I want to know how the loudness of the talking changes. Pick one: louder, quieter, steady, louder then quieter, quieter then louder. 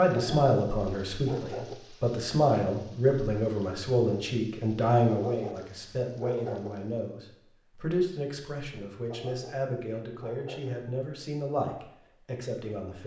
quieter.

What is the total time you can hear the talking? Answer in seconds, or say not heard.
13 s.